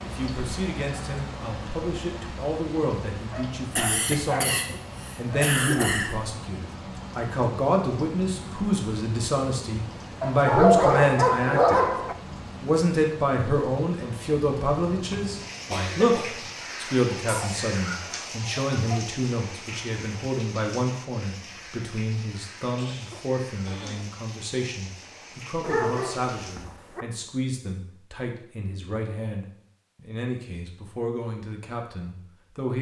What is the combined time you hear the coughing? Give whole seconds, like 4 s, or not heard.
5 s.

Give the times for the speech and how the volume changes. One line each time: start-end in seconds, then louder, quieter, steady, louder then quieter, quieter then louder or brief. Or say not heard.
0.0-11.8 louder
12.6-32.7 quieter.